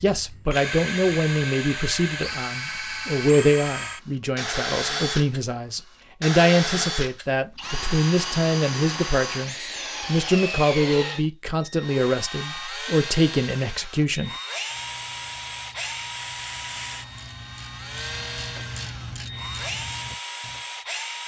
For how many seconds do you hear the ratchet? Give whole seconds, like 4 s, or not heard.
6 s.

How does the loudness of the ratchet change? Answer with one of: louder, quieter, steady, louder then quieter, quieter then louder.
louder.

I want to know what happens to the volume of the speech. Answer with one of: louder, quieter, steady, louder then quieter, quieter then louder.
steady.